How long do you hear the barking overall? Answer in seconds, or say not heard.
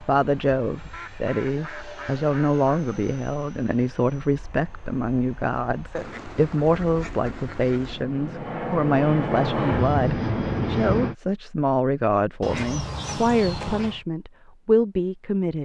not heard.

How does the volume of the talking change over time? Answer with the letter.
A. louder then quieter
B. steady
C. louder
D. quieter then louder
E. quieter
B.